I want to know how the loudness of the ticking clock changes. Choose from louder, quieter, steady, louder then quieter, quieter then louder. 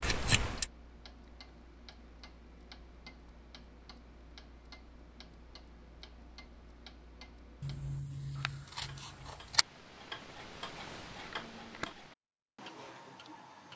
louder.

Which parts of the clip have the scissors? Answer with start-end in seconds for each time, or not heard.
0.0-0.7, 7.6-9.7.